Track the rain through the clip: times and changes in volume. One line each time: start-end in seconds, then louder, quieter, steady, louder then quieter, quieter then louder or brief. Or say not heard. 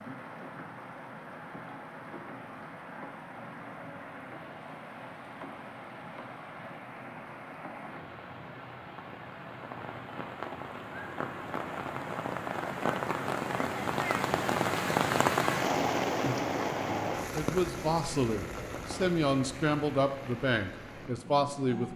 0.0-21.9 louder then quieter.